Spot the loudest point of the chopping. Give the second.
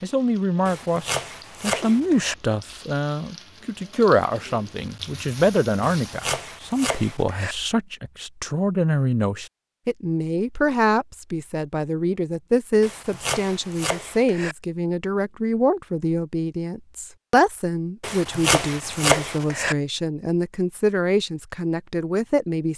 19 s.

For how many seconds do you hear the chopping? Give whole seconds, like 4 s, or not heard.
7 s.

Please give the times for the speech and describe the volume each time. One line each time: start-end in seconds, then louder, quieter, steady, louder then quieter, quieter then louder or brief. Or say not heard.
0.0-22.7 steady.